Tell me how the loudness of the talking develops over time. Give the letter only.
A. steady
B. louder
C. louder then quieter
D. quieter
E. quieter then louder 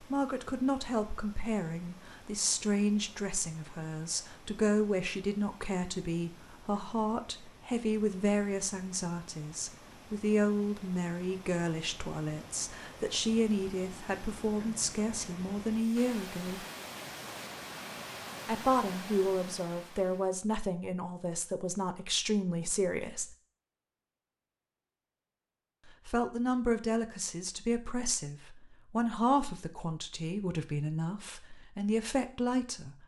A.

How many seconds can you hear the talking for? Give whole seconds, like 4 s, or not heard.
29 s.